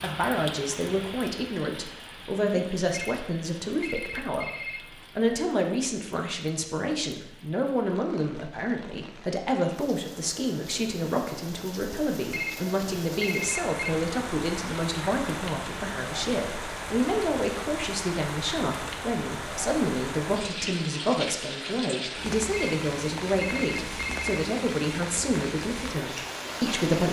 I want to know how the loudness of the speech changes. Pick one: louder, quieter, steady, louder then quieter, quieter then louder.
steady.